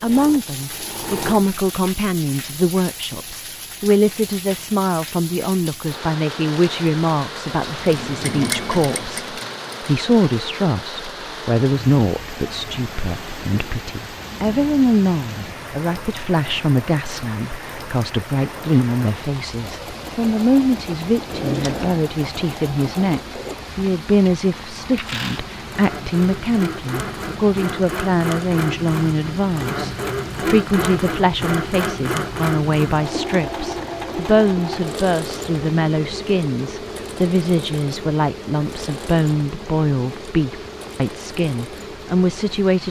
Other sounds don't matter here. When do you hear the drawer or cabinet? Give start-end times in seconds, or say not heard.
21.2-22.1.